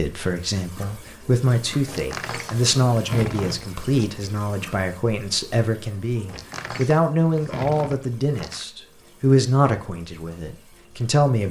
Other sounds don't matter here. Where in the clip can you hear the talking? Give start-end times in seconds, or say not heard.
0.0-11.4.